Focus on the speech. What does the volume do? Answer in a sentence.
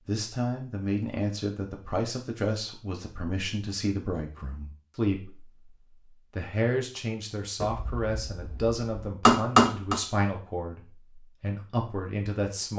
The volume of the speech stays about the same.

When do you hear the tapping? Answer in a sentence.
The tapping can be heard from 7.6 to 10.0 s.